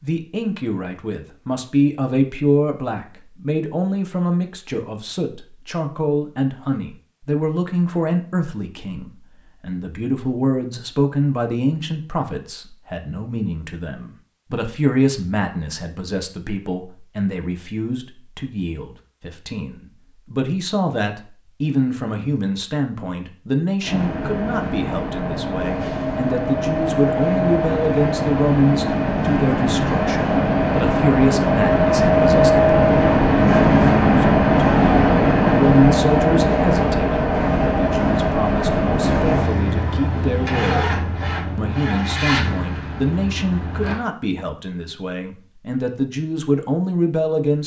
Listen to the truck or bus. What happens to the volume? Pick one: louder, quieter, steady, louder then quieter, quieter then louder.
louder then quieter.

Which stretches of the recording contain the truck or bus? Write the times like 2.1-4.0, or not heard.
23.8-44.0.